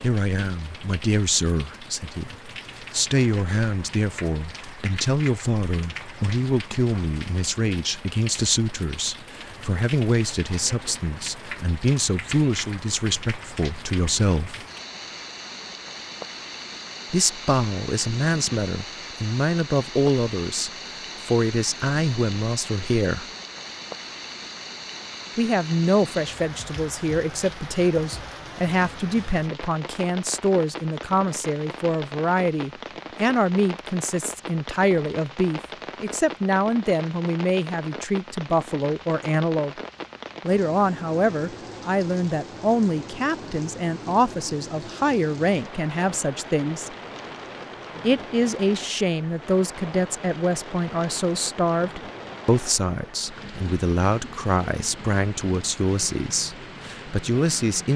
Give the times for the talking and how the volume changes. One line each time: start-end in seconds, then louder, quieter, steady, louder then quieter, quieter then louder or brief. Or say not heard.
0.0-14.7 steady
17.1-23.2 steady
25.4-39.8 steady
40.4-46.9 steady
48.0-57.9 steady.